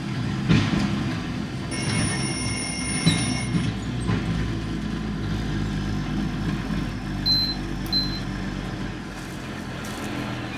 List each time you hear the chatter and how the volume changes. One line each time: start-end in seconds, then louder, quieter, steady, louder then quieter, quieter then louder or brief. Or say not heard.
not heard.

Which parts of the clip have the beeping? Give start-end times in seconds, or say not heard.
1.7-3.7, 7.2-8.2.